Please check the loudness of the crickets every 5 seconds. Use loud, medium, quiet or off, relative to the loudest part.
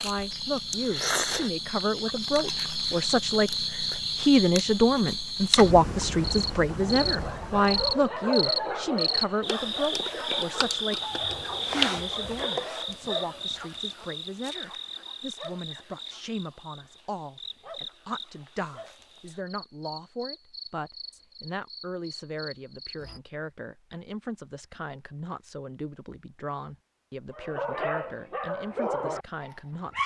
loud, loud, loud, quiet, quiet, off.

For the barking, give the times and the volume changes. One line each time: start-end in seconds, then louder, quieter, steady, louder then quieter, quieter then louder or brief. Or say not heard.
7.0-13.5 quieter
27.4-30.0 brief.